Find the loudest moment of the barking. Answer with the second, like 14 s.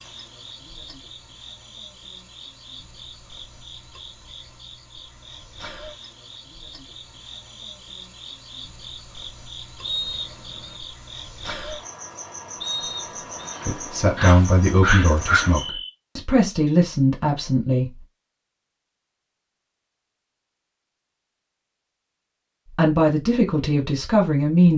15 s.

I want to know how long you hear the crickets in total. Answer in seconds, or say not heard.
16 s.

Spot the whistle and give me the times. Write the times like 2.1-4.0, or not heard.
9.8-10.8, 12.6-13.6.